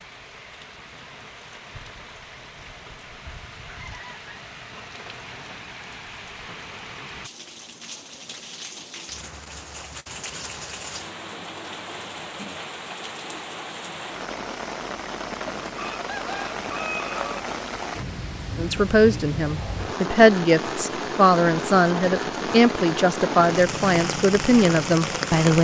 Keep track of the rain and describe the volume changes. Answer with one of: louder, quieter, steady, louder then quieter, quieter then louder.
louder.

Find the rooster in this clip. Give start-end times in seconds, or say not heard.
3.6-4.4, 15.5-17.4.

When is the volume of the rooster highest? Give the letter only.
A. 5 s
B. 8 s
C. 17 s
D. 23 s
C.